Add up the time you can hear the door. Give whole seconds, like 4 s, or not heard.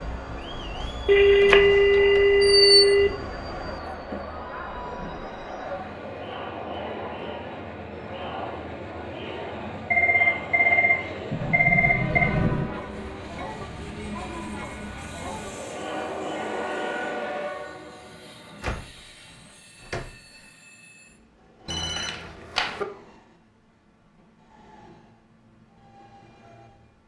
4 s.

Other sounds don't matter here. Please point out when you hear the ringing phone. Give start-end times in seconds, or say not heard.
1.1-3.1, 9.6-12.3, 21.6-22.9.